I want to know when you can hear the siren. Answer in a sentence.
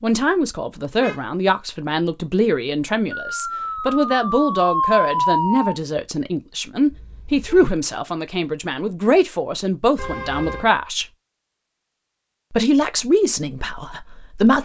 The siren can be heard from 3.2 to 5.8 s.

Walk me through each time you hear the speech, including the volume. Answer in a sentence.
You can hear the speech from 0.0 to 11.1 s, at a steady volume; and briefly from 12.5 to 14.5 s.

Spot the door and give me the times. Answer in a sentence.
The door can't be heard in this clip.